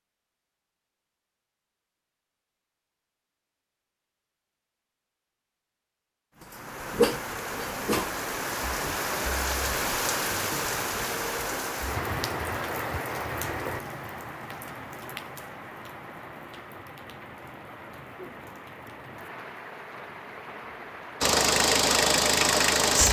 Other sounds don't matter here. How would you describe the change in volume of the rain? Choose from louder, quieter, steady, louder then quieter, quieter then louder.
quieter.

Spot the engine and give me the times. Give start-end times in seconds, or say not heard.
21.2-23.0.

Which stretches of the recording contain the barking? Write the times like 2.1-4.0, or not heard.
6.4-8.1.